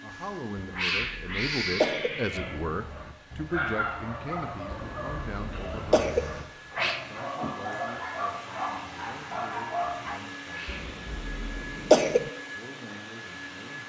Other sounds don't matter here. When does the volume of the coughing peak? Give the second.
12 s.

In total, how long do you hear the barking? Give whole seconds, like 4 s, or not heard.
8 s.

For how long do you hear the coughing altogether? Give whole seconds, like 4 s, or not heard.
5 s.